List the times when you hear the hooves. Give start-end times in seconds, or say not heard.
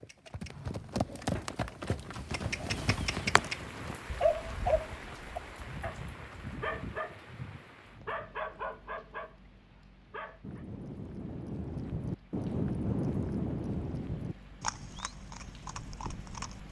0.0-7.0, 10.4-16.6.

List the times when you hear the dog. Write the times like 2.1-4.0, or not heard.
4.2-10.7.